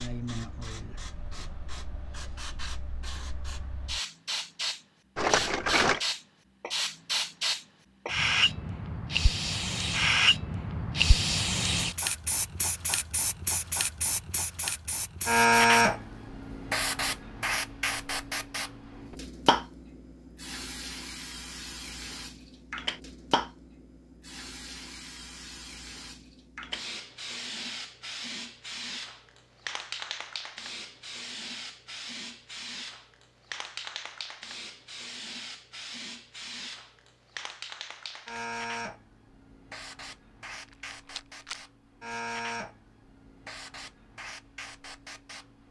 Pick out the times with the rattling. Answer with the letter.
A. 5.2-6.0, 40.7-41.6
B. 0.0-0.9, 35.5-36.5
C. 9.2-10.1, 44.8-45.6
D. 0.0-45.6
A.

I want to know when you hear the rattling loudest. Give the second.
6 s.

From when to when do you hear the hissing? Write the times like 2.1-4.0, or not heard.
0.0-45.6.